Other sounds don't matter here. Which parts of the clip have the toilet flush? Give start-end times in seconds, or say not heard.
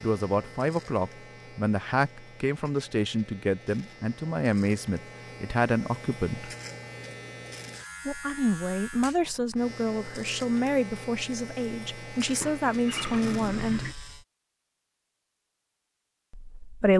12.2-13.9.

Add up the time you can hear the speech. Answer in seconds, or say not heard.
13 s.